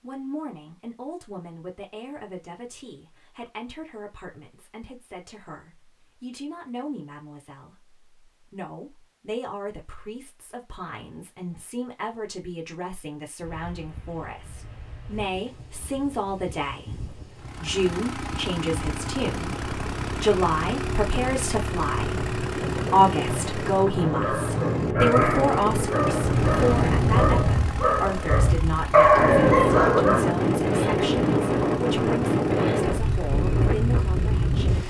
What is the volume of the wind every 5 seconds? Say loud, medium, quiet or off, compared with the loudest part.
off, off, quiet, quiet, medium, loud, loud.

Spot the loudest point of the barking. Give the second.
29 s.